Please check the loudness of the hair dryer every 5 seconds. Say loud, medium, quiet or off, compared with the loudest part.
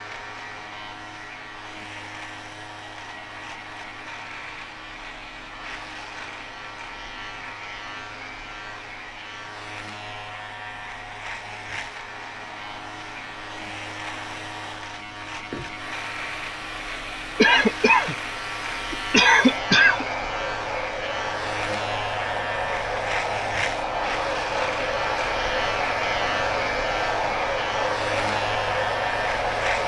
quiet, quiet, quiet, medium, loud, loud.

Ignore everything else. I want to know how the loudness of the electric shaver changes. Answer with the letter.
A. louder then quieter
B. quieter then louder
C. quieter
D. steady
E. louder
E.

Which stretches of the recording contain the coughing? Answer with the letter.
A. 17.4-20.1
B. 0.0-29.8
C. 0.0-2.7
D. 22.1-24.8
A.